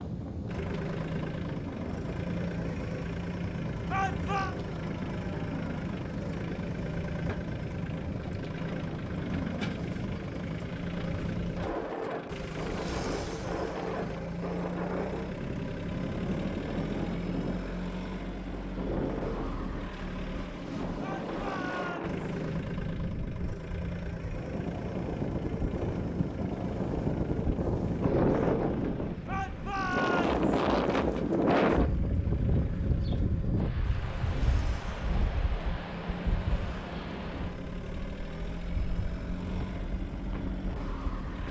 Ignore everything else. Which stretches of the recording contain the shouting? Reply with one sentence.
The shouting can be heard from 3.9 to 4.5 s, from 21.0 to 22.2 s and from 29.2 to 30.4 s.